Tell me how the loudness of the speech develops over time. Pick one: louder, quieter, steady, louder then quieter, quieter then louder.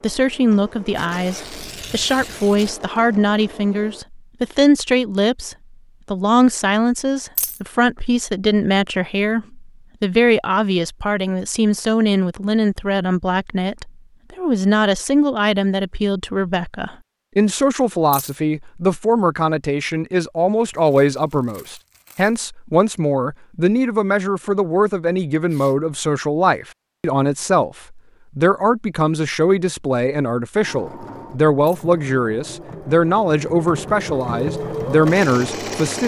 steady.